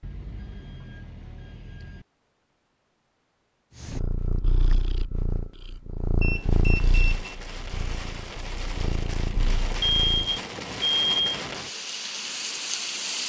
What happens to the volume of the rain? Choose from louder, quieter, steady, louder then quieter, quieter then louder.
louder.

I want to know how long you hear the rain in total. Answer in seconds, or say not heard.
7 s.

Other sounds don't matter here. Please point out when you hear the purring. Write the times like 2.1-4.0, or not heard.
3.8-10.4.